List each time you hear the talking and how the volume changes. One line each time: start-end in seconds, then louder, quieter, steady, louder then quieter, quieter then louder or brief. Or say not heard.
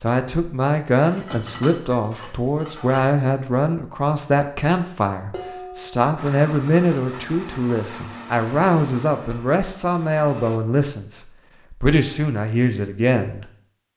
0.0-13.4 steady.